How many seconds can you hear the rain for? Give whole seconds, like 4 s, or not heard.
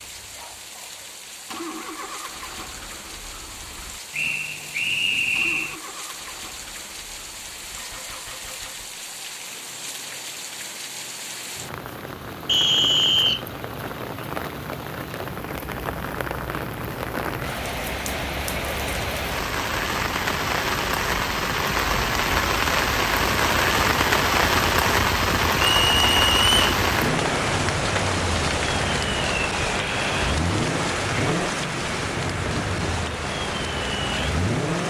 35 s.